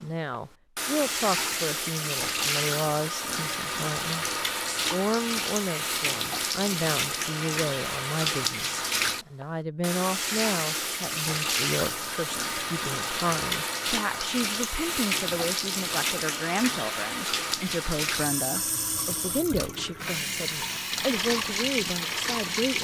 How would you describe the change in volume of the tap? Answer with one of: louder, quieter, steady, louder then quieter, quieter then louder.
steady.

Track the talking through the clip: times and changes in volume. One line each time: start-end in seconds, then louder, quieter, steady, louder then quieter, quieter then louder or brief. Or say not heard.
0.0-22.7 steady.